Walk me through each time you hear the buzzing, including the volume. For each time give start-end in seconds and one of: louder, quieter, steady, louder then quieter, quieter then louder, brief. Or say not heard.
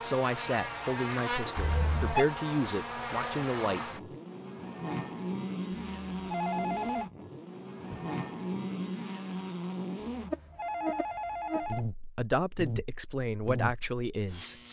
0.0-14.6 steady.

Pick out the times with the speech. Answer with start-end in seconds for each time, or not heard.
0.0-3.9, 12.2-14.6.